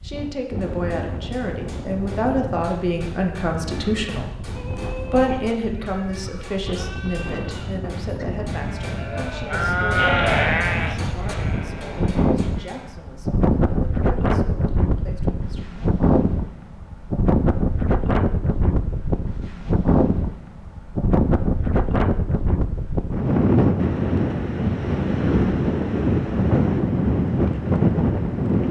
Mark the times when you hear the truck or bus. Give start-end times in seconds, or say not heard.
not heard.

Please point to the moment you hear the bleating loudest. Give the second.
10 s.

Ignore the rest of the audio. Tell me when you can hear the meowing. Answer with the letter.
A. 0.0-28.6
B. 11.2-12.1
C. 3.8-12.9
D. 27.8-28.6
B.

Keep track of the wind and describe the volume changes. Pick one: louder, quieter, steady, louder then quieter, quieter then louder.
louder.